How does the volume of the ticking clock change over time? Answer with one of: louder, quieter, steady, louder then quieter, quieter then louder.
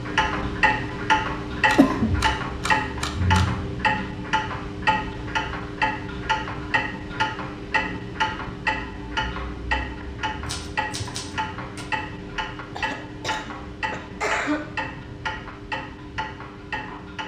quieter.